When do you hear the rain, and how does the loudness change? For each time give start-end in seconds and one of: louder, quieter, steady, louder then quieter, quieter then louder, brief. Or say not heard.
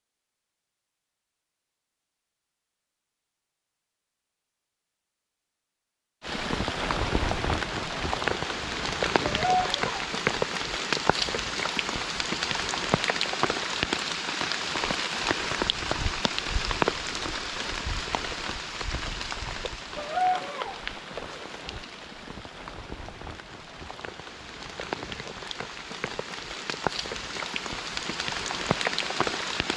6.2-29.7 quieter then louder.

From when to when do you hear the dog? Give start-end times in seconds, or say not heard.
9.4-10.0, 19.9-20.8.